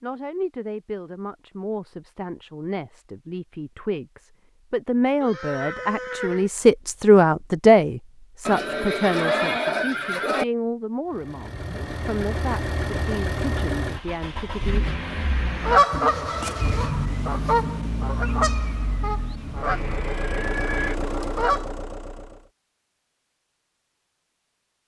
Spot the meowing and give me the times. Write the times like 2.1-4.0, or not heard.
not heard.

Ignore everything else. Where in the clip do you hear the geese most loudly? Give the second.
16 s.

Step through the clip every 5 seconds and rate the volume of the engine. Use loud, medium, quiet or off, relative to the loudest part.
off, off, loud, loud, loud.